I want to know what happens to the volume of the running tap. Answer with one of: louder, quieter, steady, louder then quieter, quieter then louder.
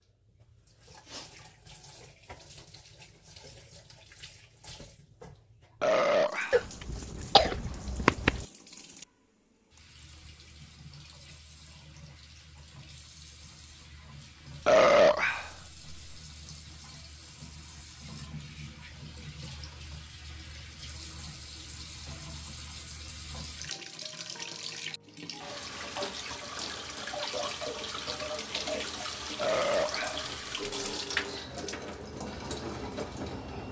louder.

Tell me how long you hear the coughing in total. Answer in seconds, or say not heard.
2 s.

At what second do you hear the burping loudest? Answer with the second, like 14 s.
15 s.